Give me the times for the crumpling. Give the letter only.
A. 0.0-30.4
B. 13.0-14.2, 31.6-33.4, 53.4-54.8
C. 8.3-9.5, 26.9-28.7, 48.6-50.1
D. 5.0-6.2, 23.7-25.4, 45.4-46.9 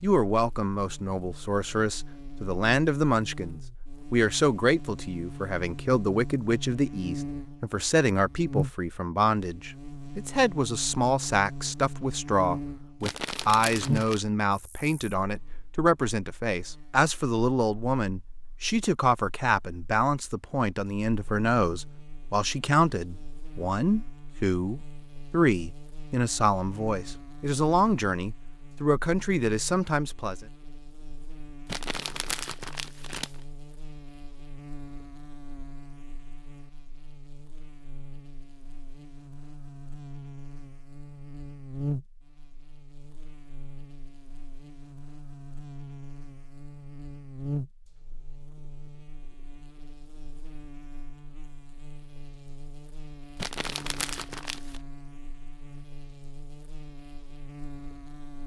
B.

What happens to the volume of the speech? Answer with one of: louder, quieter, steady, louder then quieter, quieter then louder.
steady.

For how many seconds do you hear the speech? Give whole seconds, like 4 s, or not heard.
30 s.